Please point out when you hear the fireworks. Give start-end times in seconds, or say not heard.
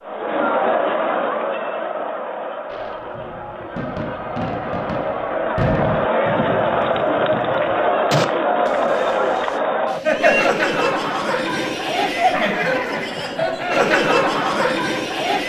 2.7-9.6.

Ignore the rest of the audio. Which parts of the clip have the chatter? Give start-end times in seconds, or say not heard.
0.0-15.4.